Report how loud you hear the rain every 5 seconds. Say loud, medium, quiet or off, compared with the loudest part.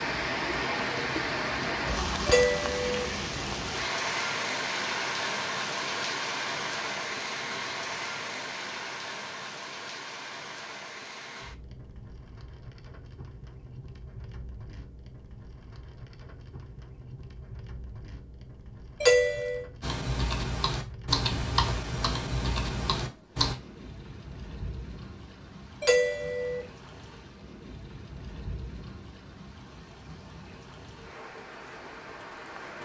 loud, loud, quiet, quiet, quiet, quiet, quiet.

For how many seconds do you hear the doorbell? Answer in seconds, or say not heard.
2 s.